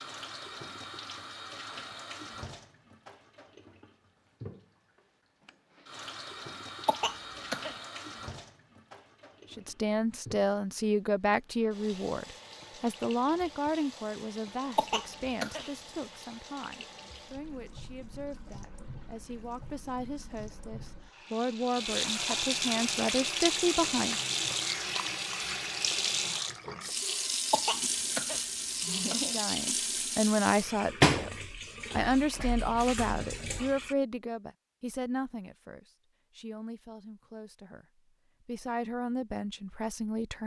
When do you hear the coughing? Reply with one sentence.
You can hear the coughing from 6.8 to 7.8 s, from 14.8 to 15.7 s and from 27.5 to 29.4 s.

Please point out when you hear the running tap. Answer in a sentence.
You can hear the running tap from 0.0 to 34.0 s.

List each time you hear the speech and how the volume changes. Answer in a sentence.
The speech can be heard from 9.5 to 24.1 s, getting quieter then louder; and from 29.3 to 40.4 s, getting quieter then louder.